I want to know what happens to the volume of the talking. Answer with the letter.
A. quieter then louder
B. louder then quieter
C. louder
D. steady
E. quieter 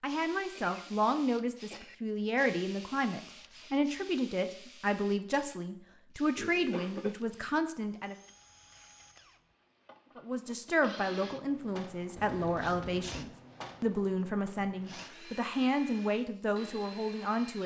D.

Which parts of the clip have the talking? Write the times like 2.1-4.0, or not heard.
0.0-8.2, 10.2-17.6.